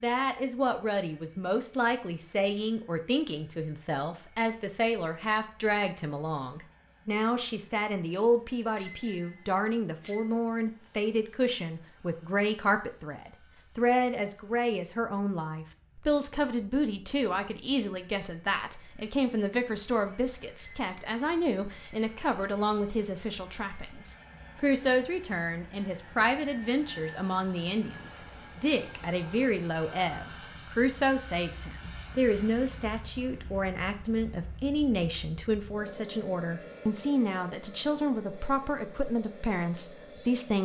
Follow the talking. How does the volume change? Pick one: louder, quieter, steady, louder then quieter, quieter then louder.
steady.